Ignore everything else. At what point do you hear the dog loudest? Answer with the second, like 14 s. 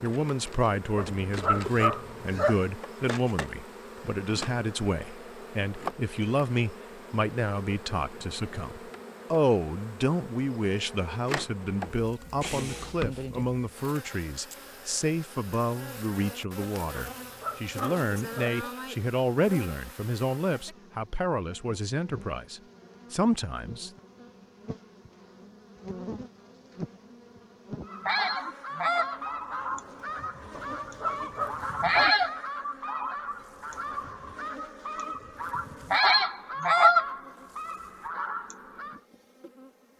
2 s.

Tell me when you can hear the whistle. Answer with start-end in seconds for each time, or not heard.
not heard.